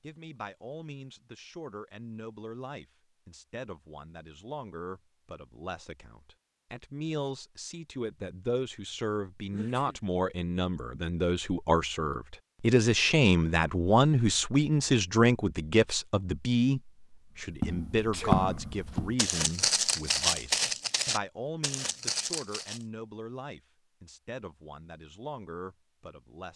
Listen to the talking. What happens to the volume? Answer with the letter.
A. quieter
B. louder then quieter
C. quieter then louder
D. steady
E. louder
B.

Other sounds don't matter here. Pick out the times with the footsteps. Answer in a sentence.
You can hear the footsteps from 17.5 to 22.9 s.